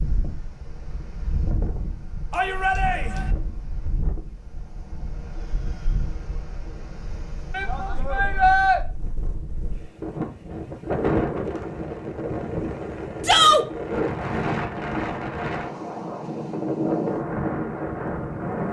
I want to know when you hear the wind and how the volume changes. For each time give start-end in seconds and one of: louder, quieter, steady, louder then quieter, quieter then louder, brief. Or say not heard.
0.0-18.6 louder.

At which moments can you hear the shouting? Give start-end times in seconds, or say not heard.
2.3-3.2, 7.5-8.8, 13.2-13.7.